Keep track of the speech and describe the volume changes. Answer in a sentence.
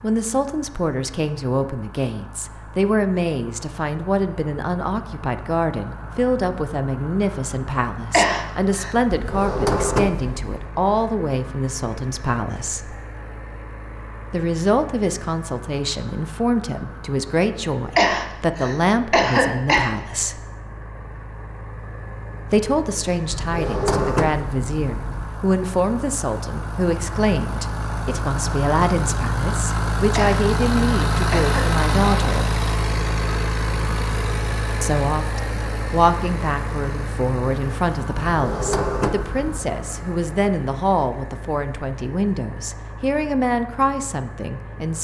The volume of the speech stays about the same.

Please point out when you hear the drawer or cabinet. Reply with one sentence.
The drawer or cabinet can be heard from 9.1 to 10.7 s, from 23.3 to 25.2 s and from 38.3 to 39.6 s.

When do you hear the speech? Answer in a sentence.
The speech can be heard from 0.0 to 12.9 s, from 14.3 to 20.4 s, from 22.5 to 32.5 s and from 34.8 to 44.9 s.